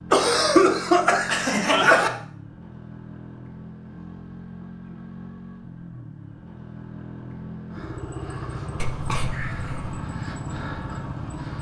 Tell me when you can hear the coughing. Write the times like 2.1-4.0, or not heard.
0.1-2.1, 8.8-10.1.